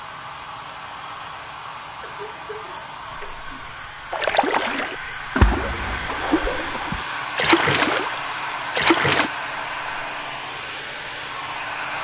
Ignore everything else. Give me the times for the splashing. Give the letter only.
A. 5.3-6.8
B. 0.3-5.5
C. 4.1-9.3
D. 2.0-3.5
C.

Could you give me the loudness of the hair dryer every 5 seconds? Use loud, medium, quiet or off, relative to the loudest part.
medium, loud, loud.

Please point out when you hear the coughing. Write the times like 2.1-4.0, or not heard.
2.0-3.5.